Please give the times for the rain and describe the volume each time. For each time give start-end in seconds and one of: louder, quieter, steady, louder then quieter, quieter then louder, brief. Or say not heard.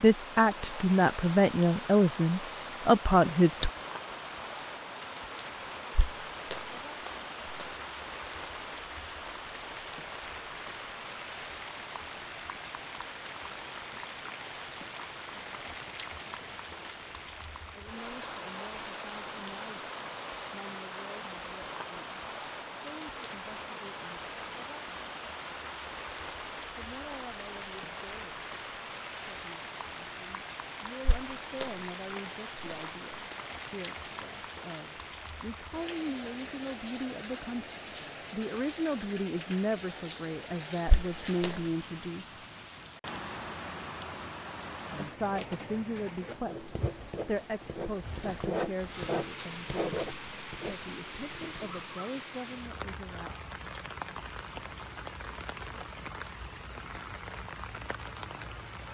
0.0-58.8 steady.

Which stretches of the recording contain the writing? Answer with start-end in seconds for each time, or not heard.
46.5-51.8.